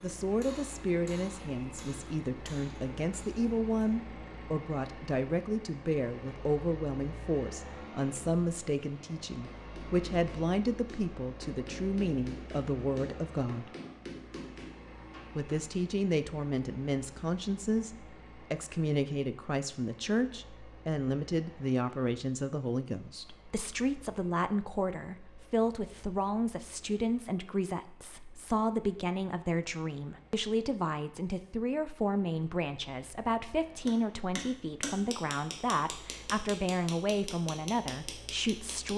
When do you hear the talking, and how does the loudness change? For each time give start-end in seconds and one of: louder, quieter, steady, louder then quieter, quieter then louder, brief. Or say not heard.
0.0-13.7 steady
15.3-38.9 steady.